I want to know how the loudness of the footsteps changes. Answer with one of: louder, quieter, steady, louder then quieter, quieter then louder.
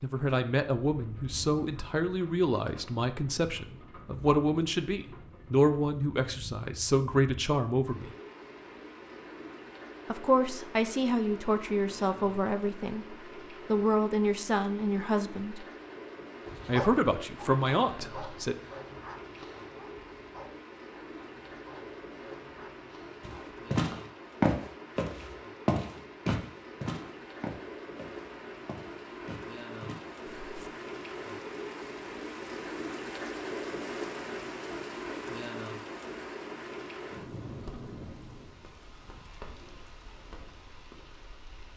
quieter.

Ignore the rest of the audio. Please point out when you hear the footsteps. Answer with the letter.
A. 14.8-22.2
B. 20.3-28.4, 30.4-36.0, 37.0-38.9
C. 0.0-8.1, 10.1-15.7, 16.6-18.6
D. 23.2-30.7
D.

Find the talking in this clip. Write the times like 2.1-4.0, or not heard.
0.0-8.1, 10.1-15.7, 16.6-18.6.